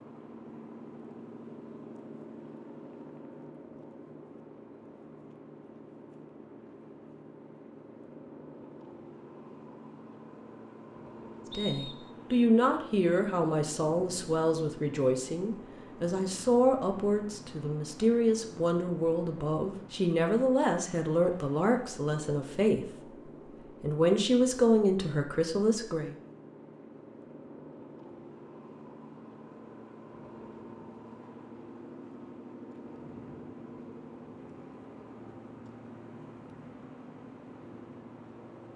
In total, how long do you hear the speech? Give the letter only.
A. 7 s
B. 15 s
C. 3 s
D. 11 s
B.